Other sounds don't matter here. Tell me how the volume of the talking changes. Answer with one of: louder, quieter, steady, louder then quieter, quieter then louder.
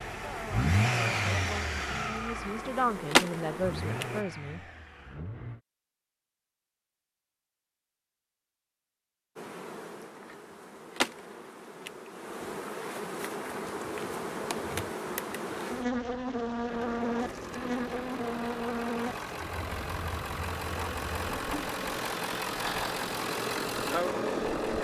louder.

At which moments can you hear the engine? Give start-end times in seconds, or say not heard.
0.0-5.6, 16.6-24.7.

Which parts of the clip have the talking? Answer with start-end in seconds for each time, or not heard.
0.1-4.6.